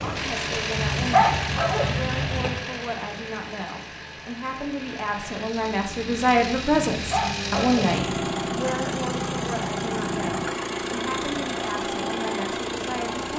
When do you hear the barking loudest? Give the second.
1 s.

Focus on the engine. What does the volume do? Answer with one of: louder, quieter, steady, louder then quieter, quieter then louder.
quieter then louder.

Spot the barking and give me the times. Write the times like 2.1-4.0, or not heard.
0.8-2.6, 6.7-8.0.